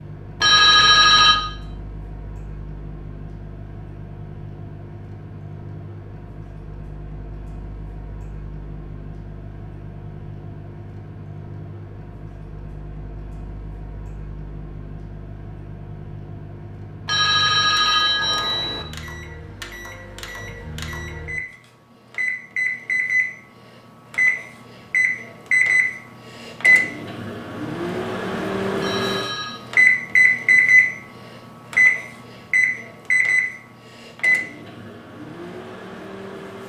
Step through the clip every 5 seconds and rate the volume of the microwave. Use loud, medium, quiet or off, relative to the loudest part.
quiet, quiet, quiet, quiet, medium, loud, loud, quiet.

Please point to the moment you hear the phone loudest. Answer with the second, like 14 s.
1 s.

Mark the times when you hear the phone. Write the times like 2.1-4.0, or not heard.
0.4-1.4, 17.1-18.9, 28.8-29.6.